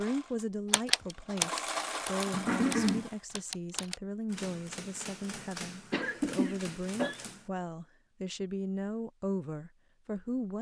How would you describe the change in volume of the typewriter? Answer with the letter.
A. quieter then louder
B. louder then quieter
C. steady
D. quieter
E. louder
D.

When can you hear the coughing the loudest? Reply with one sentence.
The loudest moment of the coughing is at 3 seconds.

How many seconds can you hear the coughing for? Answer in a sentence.
The coughing can be heard for 2 seconds in total.